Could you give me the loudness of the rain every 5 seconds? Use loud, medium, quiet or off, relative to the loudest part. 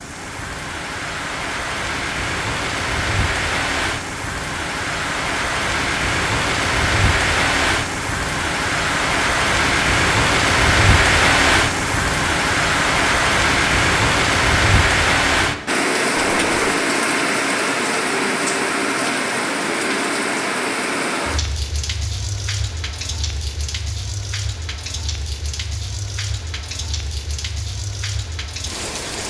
medium, loud, loud, loud, medium, quiet.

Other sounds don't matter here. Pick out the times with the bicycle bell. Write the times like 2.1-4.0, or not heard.
16.1-16.8.